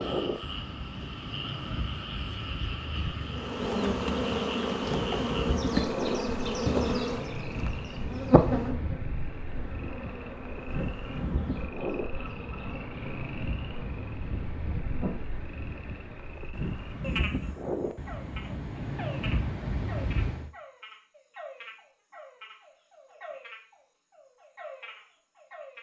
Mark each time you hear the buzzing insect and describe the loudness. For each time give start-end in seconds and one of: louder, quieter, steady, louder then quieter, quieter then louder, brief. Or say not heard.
3.2-15.3 quieter.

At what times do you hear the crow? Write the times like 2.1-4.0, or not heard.
not heard.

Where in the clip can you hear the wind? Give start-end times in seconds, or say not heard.
0.0-20.5.